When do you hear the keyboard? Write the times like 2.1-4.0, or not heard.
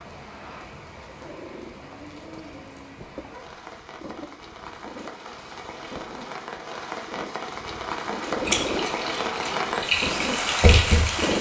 8.4-11.3.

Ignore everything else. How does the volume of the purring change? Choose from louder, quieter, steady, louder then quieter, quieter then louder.
louder.